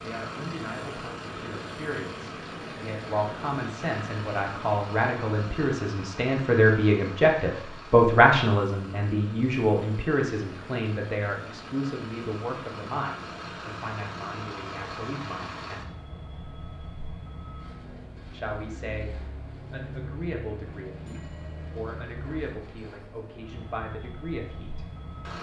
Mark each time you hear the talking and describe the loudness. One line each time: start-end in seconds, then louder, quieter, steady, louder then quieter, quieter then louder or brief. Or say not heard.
0.0-15.9 louder then quieter
18.3-24.9 steady.